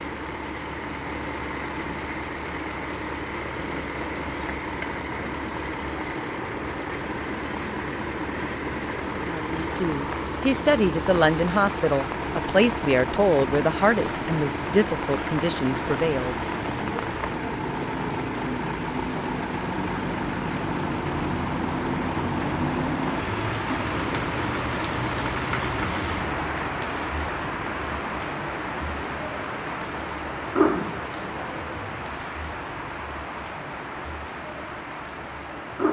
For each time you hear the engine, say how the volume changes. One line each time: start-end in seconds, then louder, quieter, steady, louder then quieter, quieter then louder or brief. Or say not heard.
0.0-35.8 quieter.